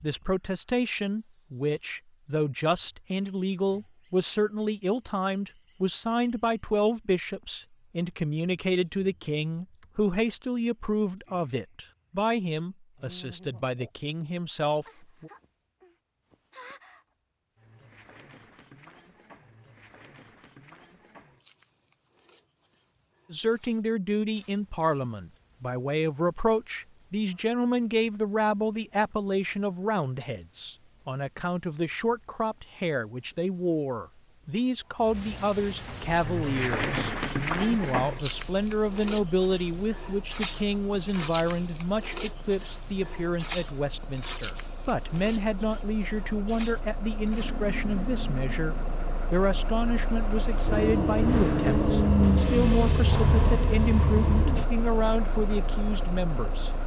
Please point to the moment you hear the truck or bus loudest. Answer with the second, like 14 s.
52 s.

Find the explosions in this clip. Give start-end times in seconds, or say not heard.
not heard.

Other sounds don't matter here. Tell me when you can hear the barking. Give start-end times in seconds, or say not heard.
not heard.